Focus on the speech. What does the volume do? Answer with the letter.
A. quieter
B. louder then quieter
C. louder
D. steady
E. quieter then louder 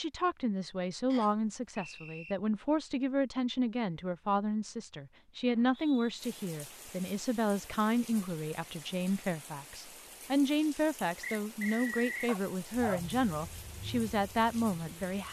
D.